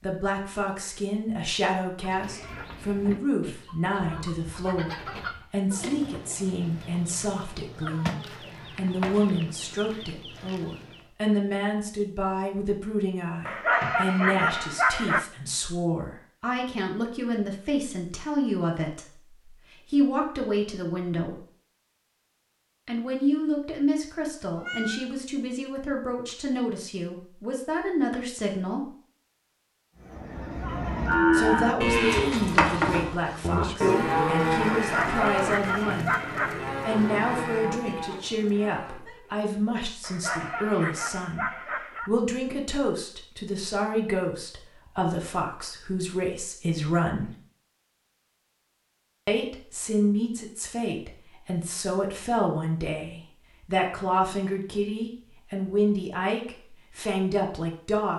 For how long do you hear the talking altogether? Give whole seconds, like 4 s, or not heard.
51 s.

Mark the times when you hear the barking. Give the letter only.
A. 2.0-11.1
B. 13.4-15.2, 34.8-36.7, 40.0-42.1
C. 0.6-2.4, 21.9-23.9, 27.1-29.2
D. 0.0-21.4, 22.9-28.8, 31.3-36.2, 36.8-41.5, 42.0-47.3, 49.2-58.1
B.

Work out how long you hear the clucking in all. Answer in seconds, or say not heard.
9 s.